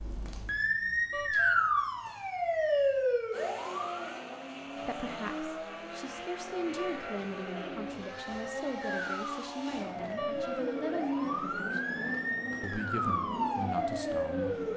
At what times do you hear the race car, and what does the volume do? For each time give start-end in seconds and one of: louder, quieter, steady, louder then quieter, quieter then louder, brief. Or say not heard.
3.3-14.7 steady.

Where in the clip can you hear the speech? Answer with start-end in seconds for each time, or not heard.
4.8-11.9, 12.6-14.6.